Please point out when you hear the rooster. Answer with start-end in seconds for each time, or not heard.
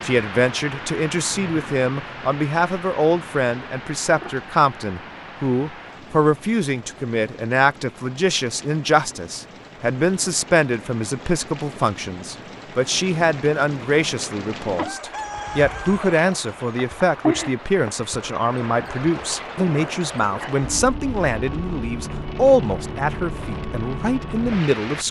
14.8-16.0.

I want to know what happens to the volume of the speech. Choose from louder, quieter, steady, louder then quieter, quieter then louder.
steady.